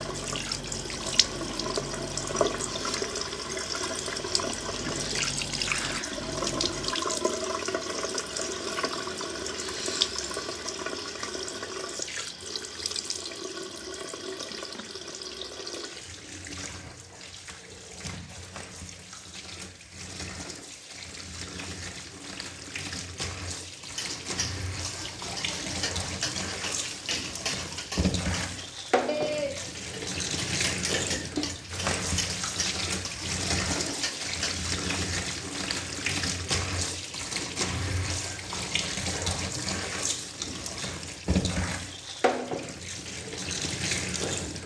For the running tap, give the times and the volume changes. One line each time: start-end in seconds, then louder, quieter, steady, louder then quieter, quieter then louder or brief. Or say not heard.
0.0-44.6 quieter then louder.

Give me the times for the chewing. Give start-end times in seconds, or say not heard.
0.0-7.0.